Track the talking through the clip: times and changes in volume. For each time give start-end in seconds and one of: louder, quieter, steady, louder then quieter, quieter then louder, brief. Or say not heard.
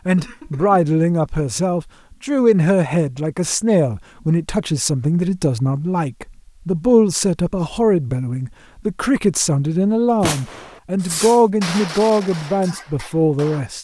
0.1-13.7 steady.